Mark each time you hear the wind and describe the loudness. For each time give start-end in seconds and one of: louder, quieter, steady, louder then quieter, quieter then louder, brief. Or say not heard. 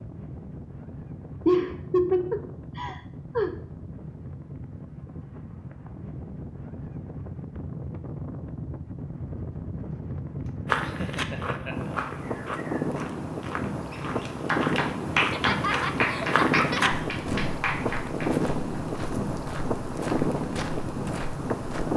0.0-21.9 louder.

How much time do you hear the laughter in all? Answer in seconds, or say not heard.
5 s.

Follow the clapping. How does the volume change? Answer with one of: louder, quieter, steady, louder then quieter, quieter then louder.
quieter.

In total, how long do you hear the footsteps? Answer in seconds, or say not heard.
11 s.